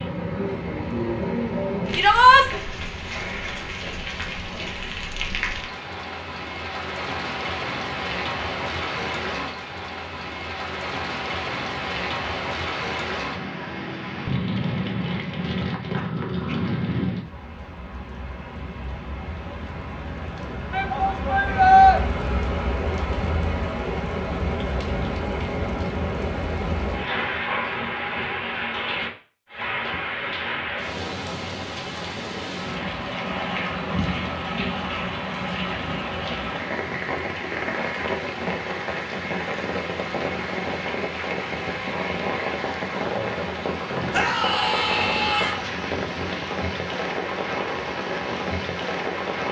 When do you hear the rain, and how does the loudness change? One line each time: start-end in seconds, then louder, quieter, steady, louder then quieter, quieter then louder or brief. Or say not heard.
0.0-49.4 steady.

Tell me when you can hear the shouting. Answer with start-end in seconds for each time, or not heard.
1.9-2.5, 20.7-22.0, 44.1-45.5.